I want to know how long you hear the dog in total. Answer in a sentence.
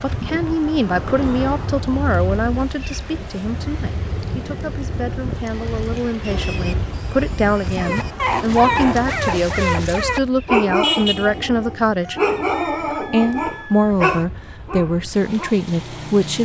The dog can be heard for 8 seconds in total.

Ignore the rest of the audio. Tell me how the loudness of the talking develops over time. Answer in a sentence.
The loudness of the talking goes down, then up.